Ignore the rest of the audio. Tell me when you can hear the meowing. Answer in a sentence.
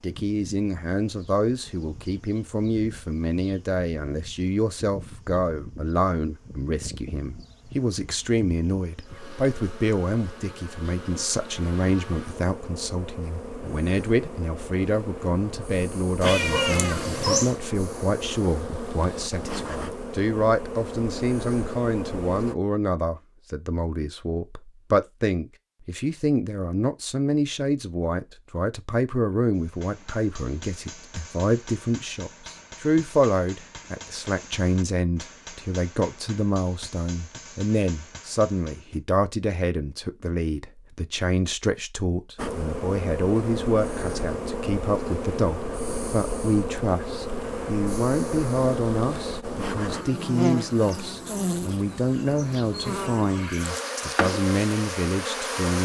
You can hear the meowing from 16.2 to 17.6 s.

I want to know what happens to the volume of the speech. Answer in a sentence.
The volume of the speech stays about the same.